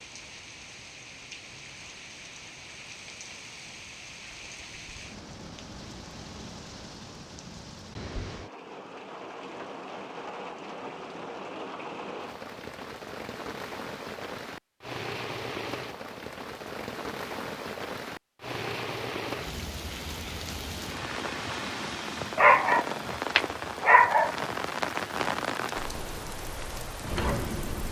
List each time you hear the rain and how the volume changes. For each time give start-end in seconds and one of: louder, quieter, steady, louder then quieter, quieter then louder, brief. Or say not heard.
0.0-27.8 louder.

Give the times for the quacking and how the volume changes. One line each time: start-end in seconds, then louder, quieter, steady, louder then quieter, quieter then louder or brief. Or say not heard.
not heard.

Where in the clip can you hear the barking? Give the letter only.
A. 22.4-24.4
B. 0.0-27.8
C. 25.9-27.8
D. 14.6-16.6
A.